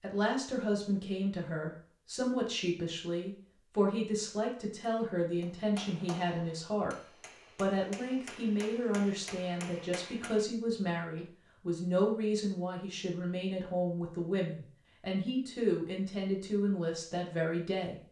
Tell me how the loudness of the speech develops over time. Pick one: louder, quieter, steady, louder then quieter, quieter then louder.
steady.